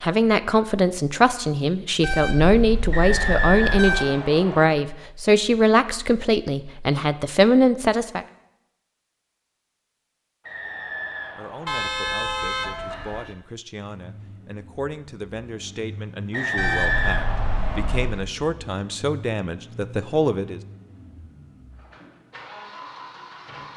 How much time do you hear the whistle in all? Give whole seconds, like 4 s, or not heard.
5 s.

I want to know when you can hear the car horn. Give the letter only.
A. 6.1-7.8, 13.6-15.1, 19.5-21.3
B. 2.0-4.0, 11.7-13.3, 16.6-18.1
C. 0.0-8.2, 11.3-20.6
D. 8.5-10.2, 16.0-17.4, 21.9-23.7
B.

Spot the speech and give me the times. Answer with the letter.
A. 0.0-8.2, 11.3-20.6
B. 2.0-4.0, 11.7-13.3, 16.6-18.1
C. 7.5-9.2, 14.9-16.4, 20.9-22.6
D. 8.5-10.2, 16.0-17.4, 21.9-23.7
A.